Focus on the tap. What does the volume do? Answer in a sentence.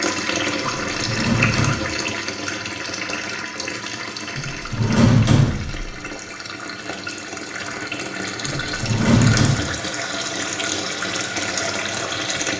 The volume of the tap goes down, then up.